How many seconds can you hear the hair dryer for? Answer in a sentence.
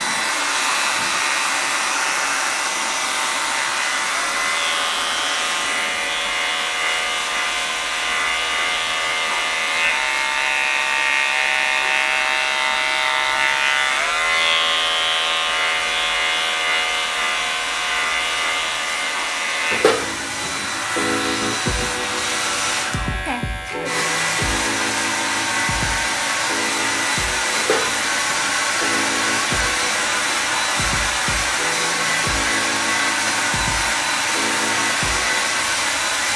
The hair dryer can be heard for 36 seconds in total.